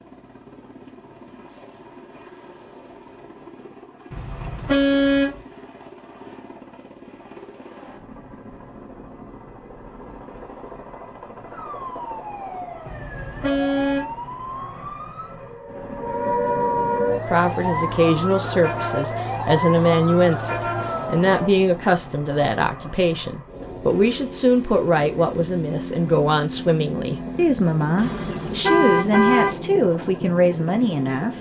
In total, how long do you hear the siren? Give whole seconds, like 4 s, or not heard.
10 s.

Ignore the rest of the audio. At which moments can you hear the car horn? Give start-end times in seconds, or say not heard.
4.1-5.4, 12.8-14.2, 27.9-29.6.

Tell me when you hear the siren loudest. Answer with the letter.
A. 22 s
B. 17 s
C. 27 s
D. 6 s
B.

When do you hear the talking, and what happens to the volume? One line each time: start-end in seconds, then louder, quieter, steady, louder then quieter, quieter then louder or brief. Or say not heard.
17.2-31.3 steady.